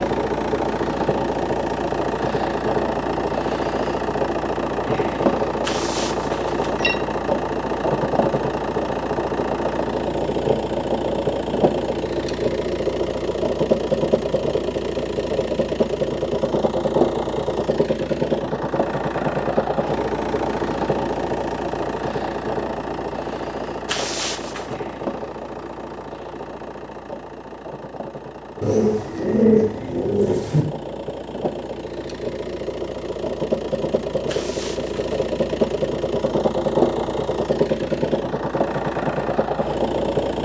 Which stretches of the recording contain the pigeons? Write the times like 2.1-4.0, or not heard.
28.6-30.6.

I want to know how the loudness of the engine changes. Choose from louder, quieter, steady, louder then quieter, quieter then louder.
quieter then louder.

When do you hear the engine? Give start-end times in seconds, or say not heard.
0.0-40.4.